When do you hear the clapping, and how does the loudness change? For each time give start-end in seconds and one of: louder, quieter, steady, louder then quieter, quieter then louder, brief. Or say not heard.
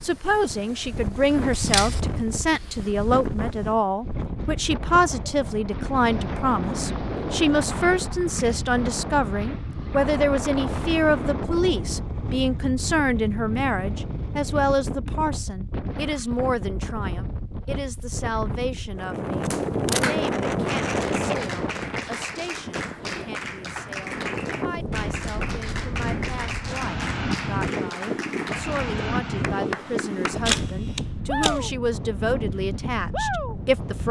19.5-30.7 steady.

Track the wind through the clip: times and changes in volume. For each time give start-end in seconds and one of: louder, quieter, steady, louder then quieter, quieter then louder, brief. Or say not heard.
0.0-34.0 steady.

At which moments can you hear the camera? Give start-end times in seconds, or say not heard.
1.4-2.0, 19.4-20.1, 30.4-31.6.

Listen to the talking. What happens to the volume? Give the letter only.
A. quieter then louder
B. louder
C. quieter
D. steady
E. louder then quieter
A.